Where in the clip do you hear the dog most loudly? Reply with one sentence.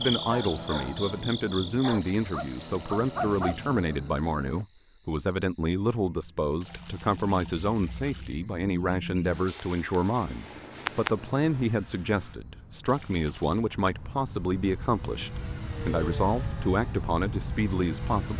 The loudest moment of the dog is at 3 seconds.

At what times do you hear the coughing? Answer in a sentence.
You can't hear the coughing here.